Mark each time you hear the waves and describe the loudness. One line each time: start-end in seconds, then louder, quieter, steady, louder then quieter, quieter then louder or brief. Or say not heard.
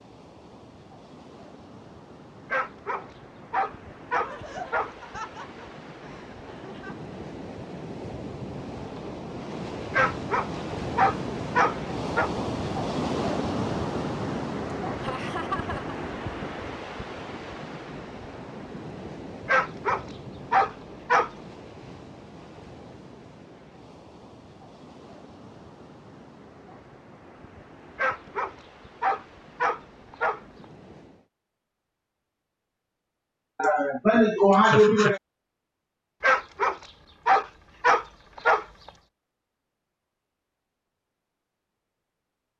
0.0-31.3 louder then quieter.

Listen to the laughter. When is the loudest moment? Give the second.
35 s.